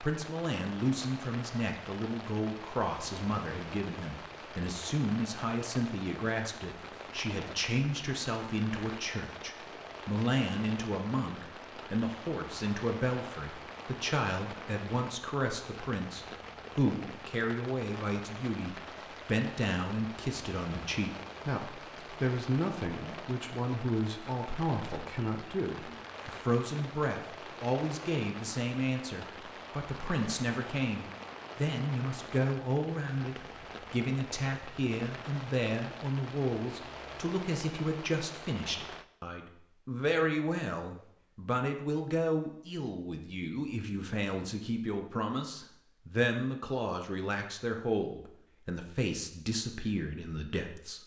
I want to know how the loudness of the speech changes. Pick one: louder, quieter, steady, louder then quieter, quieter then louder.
steady.